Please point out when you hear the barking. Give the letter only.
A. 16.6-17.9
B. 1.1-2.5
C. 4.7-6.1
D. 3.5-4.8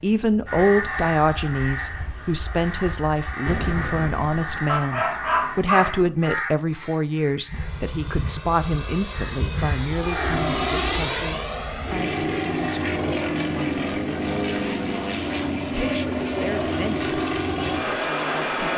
C.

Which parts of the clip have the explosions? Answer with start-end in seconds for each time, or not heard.
3.5-4.8.